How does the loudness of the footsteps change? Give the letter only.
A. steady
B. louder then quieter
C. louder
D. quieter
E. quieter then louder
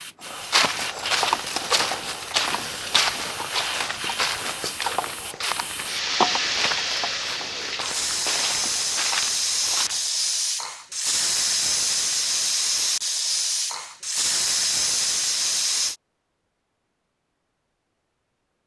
D.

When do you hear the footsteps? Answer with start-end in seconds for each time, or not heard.
0.2-10.1.